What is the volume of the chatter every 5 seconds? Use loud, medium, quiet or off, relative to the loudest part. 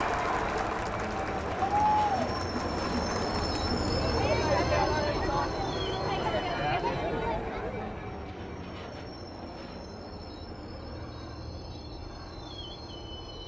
loud, loud, off.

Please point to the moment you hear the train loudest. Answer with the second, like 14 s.
4 s.